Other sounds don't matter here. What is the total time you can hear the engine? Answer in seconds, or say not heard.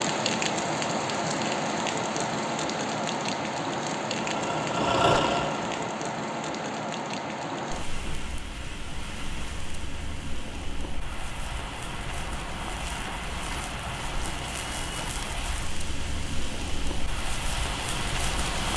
2 s.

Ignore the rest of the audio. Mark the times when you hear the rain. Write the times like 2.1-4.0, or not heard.
0.0-18.7.